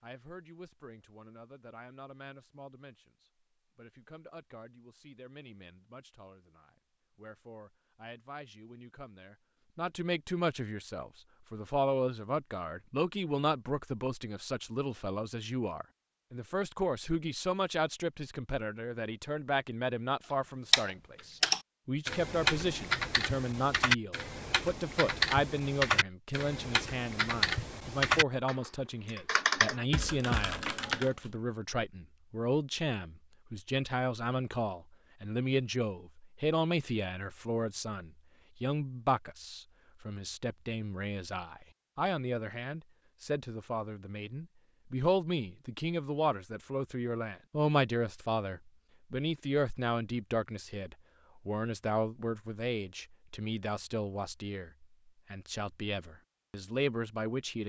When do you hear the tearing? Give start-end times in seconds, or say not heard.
not heard.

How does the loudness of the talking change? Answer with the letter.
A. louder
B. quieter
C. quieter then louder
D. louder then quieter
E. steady
A.